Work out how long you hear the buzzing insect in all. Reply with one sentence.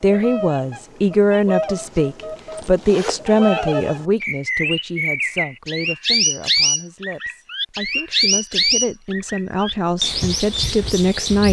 You can't hear the buzzing insect here.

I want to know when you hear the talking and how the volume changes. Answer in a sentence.
You can hear the talking from 0.0 to 11.4 s, getting quieter then louder.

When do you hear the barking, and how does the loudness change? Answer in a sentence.
You can't hear the barking here.